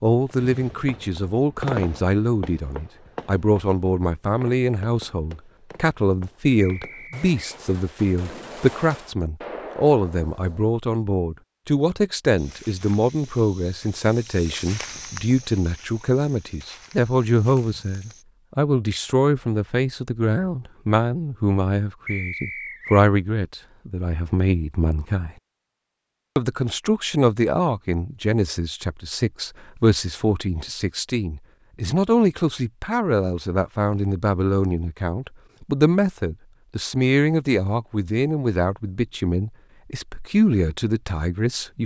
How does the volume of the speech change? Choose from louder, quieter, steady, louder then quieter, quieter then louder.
steady.